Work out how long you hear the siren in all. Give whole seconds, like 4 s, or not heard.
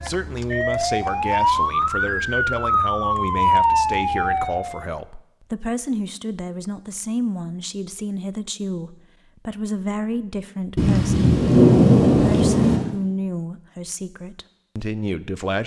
5 s.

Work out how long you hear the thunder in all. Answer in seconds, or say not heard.
2 s.